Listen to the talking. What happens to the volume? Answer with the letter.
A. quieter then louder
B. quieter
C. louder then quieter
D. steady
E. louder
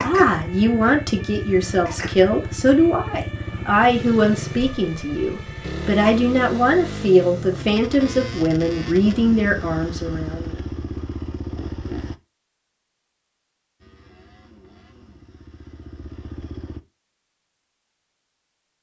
D.